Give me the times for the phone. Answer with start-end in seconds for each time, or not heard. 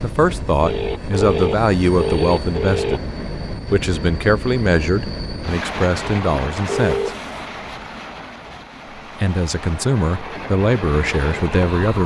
0.6-3.0, 6.7-7.4.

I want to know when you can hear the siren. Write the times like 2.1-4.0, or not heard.
not heard.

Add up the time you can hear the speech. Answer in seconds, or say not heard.
9 s.